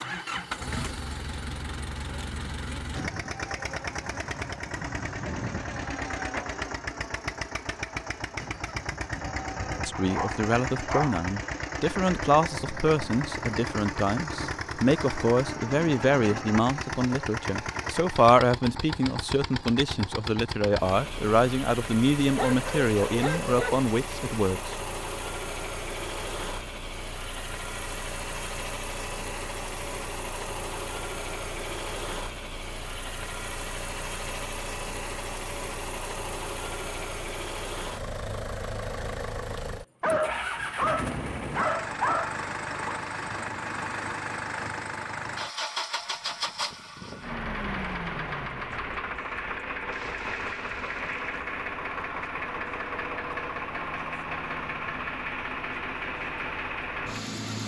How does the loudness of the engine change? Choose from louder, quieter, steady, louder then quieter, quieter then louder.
steady.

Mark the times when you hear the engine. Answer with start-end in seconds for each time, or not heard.
0.0-57.6.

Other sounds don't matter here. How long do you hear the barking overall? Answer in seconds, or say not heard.
6 s.